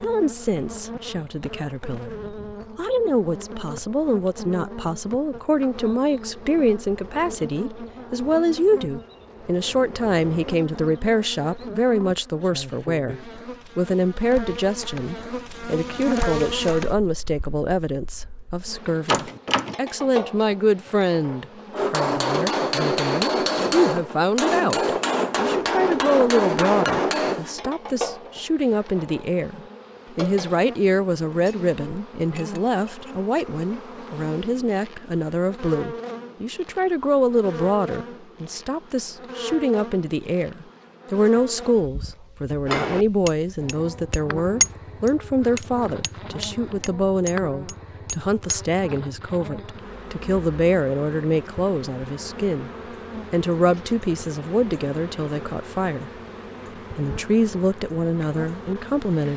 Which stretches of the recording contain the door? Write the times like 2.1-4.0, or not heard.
19.1-19.9.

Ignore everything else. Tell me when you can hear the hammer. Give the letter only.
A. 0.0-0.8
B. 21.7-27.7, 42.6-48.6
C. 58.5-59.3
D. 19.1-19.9
B.